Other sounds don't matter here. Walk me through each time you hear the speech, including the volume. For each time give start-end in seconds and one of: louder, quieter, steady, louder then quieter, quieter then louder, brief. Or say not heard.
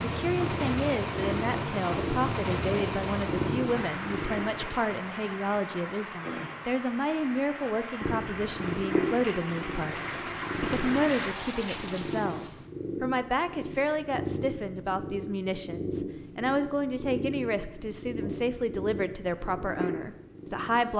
0.0-20.9 steady.